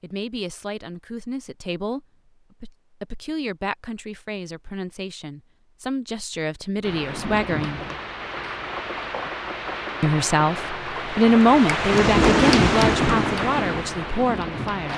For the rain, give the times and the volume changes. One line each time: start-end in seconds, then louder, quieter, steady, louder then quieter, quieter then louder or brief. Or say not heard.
6.8-14.9 louder then quieter.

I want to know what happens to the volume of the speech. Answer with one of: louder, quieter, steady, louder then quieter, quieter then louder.
louder then quieter.